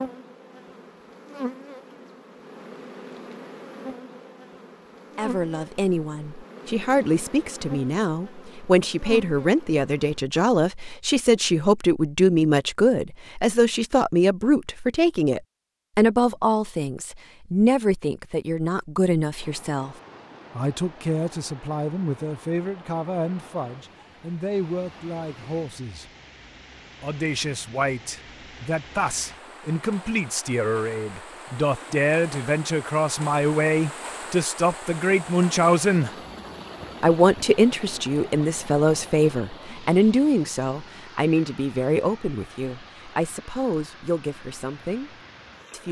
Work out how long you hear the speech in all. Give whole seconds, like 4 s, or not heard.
38 s.